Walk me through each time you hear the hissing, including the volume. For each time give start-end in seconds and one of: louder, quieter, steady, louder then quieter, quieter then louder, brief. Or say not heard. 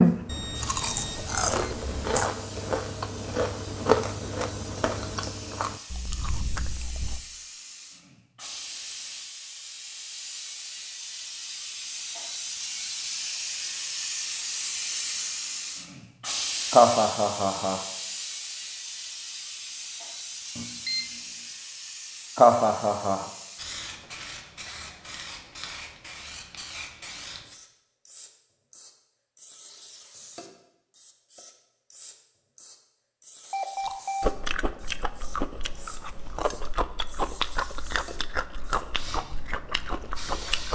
0.0-40.6 louder then quieter.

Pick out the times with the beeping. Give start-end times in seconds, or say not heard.
0.2-2.2, 20.6-21.1, 33.5-34.3.